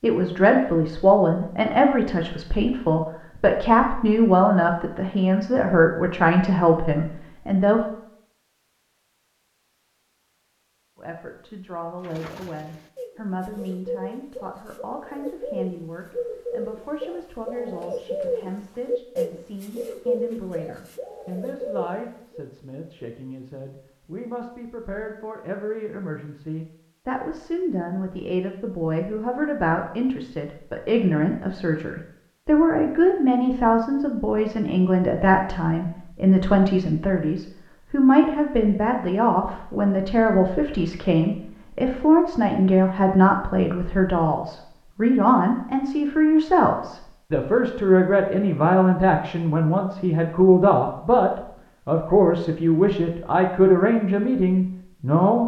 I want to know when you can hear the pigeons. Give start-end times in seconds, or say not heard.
12.0-22.5.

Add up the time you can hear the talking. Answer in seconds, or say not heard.
52 s.